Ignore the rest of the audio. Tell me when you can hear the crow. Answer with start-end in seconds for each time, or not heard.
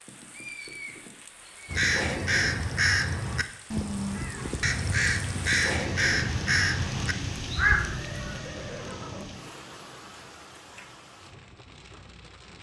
1.6-8.4.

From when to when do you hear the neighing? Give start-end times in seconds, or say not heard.
0.1-1.9, 7.8-9.4.